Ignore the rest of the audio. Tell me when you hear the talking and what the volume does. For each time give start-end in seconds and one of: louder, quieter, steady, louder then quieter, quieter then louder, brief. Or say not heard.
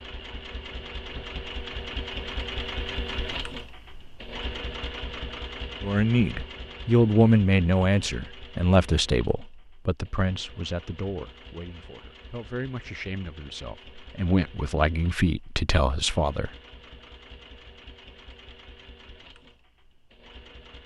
5.8-16.5 quieter then louder.